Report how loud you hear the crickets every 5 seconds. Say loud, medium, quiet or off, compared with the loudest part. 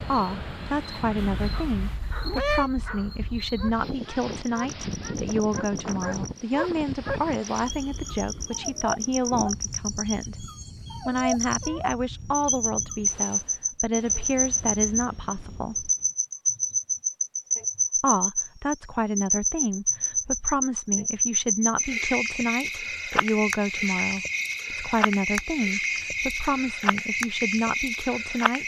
quiet, medium, loud, loud, loud, loud.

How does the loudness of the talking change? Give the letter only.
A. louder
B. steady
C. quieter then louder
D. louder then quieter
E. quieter
B.